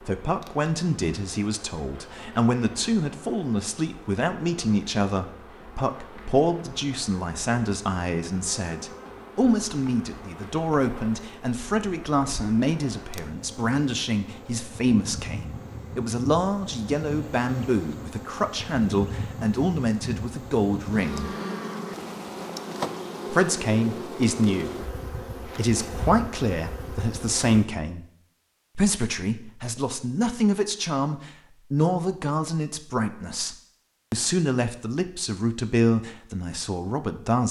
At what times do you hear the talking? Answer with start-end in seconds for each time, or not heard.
0.1-21.4, 23.3-28.1, 28.8-37.4.